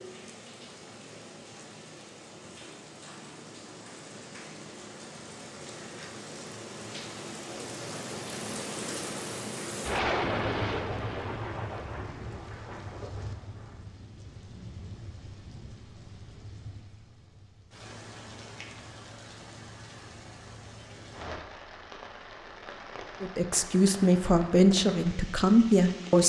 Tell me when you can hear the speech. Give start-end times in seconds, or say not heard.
23.2-26.2.